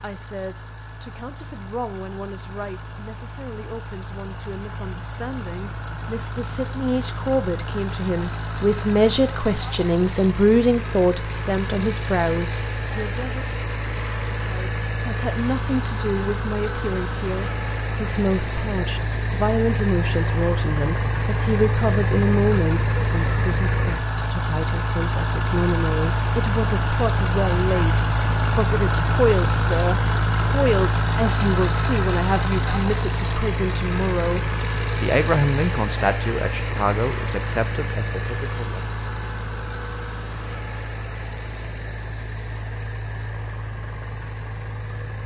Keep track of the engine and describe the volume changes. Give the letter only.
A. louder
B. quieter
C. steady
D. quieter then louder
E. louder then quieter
E.